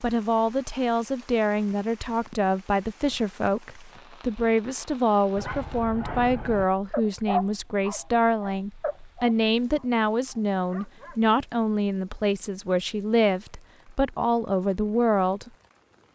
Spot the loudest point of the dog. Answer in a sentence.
The volume of the dog peaks at 7 seconds.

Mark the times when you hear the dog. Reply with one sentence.
The dog can be heard from 5.3 to 11.2 s.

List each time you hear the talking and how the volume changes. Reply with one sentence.
The talking can be heard from 0.0 to 15.5 s, at a steady volume.